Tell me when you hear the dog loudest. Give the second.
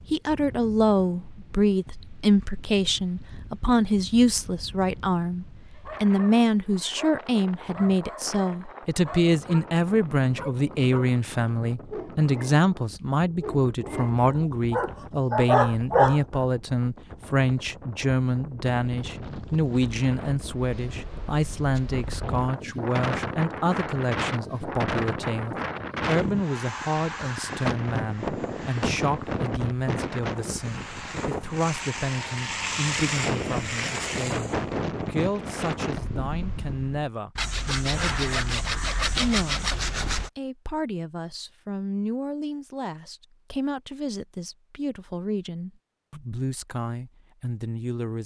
16 s.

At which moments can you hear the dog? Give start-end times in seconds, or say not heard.
5.8-11.2, 11.9-12.6, 13.4-16.4.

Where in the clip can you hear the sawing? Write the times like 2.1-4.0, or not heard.
37.4-40.3.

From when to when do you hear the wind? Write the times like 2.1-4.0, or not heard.
0.0-37.1.